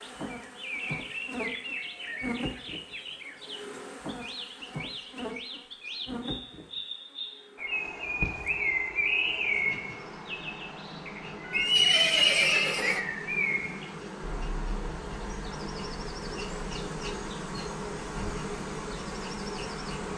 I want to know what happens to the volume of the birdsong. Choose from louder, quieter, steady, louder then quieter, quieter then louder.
louder then quieter.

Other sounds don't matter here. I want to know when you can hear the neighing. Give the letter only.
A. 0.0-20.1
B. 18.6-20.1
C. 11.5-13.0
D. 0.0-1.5
C.